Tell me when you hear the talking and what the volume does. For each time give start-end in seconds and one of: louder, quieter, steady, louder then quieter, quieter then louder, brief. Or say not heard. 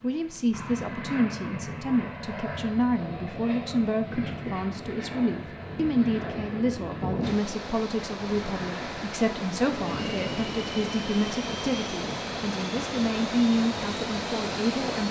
0.0-15.0 steady.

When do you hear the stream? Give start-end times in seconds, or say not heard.
7.2-15.0.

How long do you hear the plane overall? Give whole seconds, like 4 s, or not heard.
15 s.